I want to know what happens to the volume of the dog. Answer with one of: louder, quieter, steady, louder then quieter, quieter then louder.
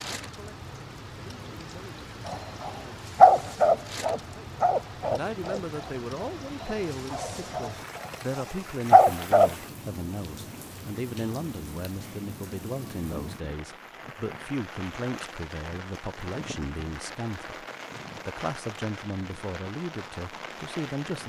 quieter then louder.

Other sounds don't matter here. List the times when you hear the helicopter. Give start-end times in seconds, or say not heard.
not heard.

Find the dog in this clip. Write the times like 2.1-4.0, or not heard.
2.2-9.6.